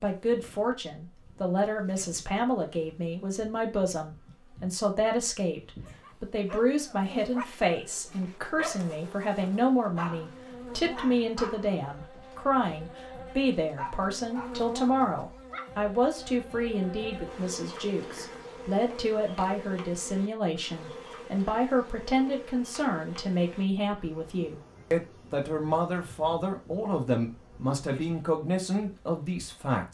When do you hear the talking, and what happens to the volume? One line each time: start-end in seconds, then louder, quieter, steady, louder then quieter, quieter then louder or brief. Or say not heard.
0.0-29.8 steady.